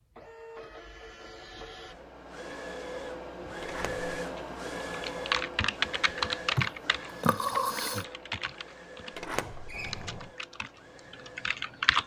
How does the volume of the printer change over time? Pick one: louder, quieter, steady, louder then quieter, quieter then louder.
louder then quieter.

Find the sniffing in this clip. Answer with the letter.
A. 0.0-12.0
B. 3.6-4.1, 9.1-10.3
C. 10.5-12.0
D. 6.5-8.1
D.